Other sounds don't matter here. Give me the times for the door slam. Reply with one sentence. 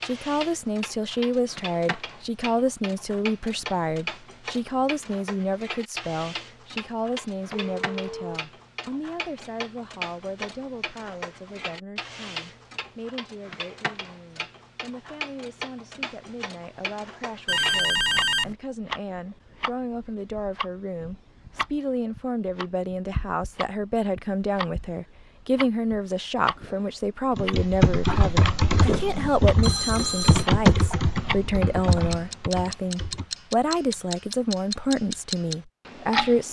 The door slam can't be heard in this clip.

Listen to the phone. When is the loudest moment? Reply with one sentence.
The volume of the phone peaks at 18 seconds.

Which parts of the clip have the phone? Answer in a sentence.
The phone can be heard from 7.5 to 8.4 s, from 17.4 to 18.6 s and from 29.6 to 30.4 s.